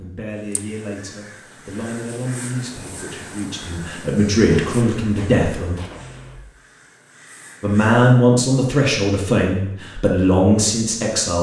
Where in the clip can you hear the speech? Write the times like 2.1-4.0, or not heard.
0.0-5.8, 7.6-11.3.